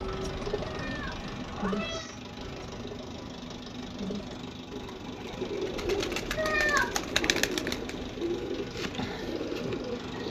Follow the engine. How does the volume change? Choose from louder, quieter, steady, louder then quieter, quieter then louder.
steady.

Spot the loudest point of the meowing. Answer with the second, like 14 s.
7 s.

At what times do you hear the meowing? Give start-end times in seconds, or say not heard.
0.7-2.2, 6.3-7.3.